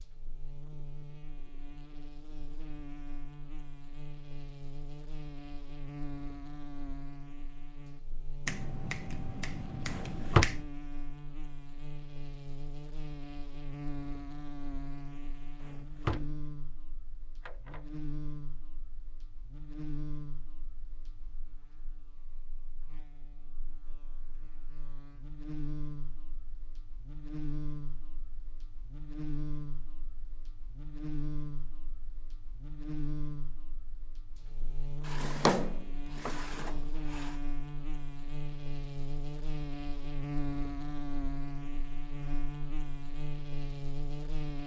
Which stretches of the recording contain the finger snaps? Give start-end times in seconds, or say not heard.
8.4-10.7.